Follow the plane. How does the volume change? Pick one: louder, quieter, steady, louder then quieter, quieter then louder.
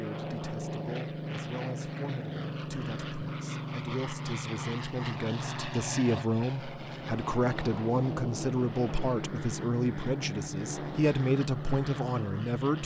steady.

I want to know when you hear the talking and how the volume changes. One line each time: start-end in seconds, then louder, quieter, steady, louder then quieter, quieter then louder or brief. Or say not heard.
0.0-12.8 louder.